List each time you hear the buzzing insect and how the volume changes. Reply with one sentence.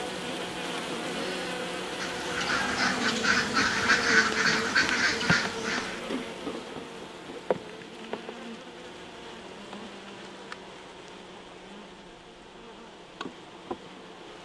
The buzzing insect can be heard from 0.0 to 14.4 s, getting quieter.